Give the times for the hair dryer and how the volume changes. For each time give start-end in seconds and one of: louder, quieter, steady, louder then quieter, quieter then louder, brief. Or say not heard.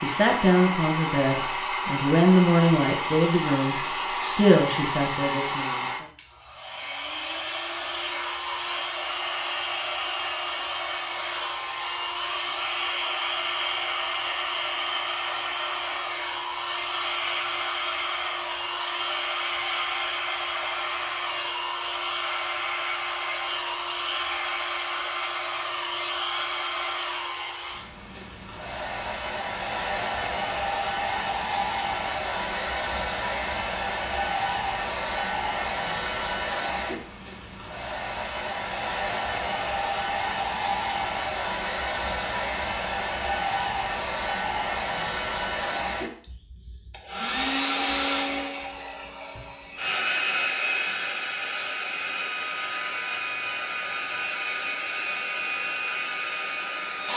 0.0-57.1 steady.